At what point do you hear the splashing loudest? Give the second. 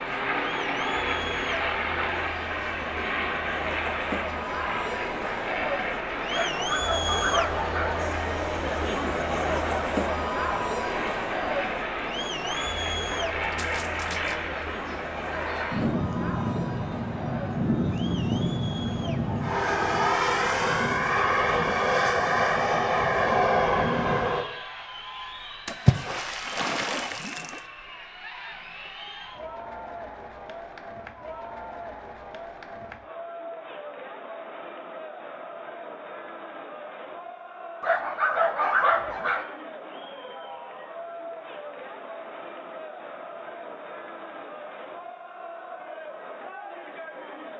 26 s.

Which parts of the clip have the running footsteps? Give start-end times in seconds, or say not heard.
not heard.